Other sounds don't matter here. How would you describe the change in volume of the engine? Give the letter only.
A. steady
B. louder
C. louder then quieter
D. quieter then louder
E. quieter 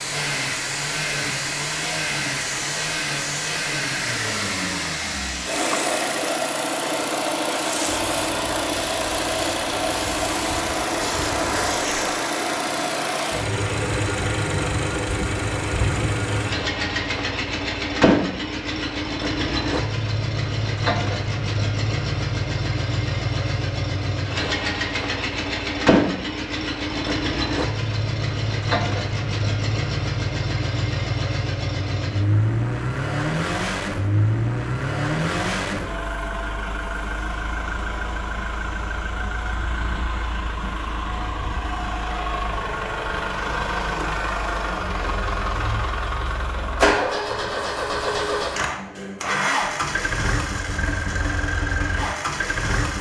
A.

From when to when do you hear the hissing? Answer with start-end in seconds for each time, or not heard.
7.7-12.2.